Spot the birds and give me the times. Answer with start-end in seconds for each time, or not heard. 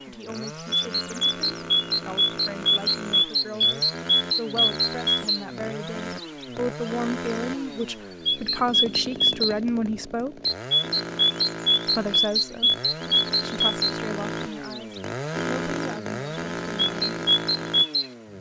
0.3-6.9, 7.8-9.6, 10.4-15.0, 15.8-18.1.